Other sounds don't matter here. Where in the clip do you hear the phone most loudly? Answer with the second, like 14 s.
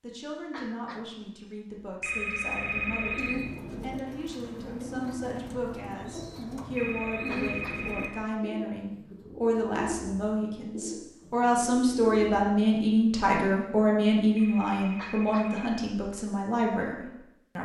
3 s.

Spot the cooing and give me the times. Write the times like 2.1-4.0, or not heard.
2.3-12.6.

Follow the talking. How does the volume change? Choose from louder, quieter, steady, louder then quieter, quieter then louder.
louder.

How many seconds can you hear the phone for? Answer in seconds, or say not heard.
4 s.